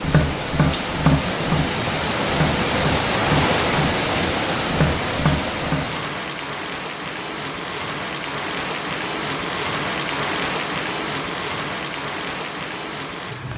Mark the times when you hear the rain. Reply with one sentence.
You can hear the rain from 0.0 to 13.5 s.